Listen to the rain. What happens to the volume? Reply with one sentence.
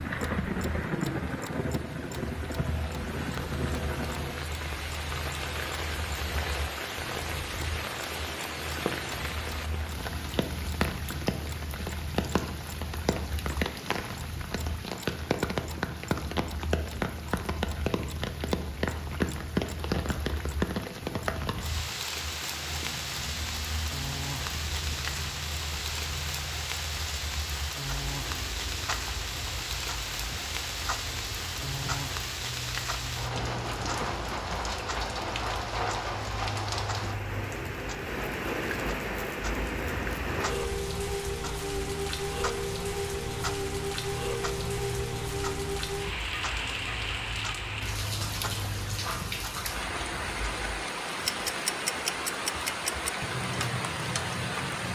The loudness of the rain stays about the same.